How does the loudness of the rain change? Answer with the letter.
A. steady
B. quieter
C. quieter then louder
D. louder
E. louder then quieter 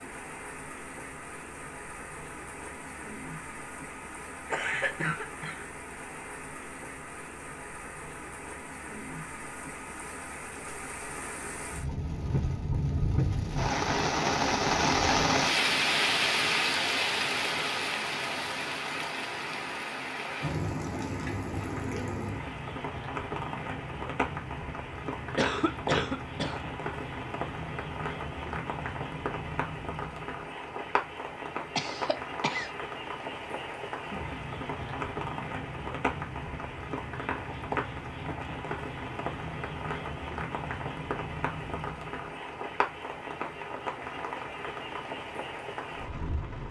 E.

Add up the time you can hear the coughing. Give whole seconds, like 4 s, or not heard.
3 s.